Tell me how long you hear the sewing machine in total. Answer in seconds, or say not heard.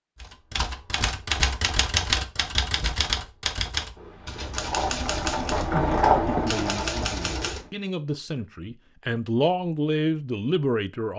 4 s.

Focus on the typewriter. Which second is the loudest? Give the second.
2 s.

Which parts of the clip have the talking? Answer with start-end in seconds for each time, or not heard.
6.2-11.1.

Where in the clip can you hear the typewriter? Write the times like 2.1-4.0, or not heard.
0.2-7.7.